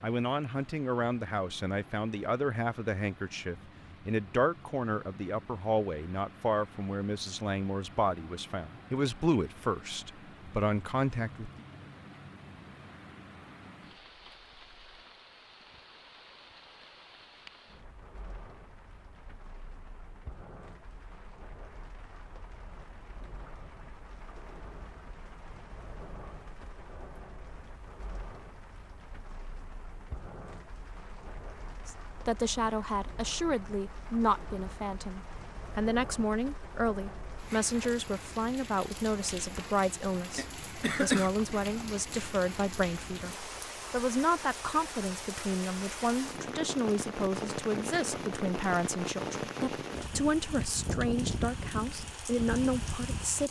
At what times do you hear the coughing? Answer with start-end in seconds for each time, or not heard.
40.4-41.3.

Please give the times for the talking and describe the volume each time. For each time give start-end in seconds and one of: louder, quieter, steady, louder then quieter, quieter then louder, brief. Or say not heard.
0.0-11.7 steady
31.9-53.4 steady.